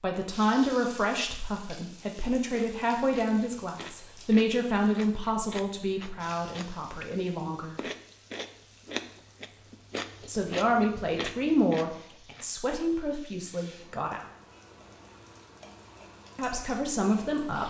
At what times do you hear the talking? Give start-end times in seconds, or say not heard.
0.0-7.8, 10.2-14.2, 16.4-17.6.